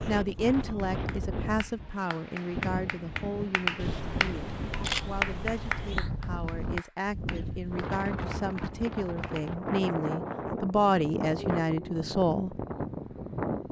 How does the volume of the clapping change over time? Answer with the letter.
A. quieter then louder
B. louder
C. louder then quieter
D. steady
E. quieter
C.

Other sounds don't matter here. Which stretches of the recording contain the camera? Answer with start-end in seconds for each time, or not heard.
3.8-6.1.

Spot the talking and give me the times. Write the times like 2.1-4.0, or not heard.
0.1-12.6.